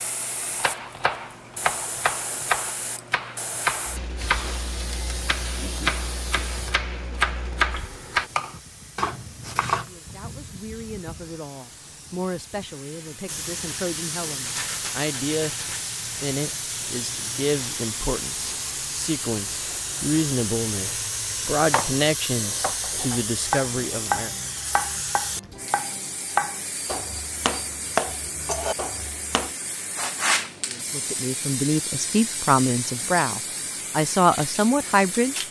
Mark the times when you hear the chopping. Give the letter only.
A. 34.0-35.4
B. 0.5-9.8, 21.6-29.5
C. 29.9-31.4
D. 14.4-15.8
B.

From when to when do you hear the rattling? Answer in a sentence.
The rattling can be heard from 14.4 to 15.8 s.